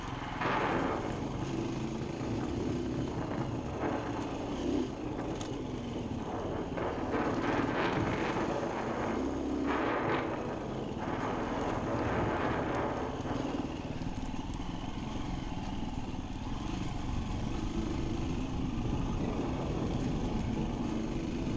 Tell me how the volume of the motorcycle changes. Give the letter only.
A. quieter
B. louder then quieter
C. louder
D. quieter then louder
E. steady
E.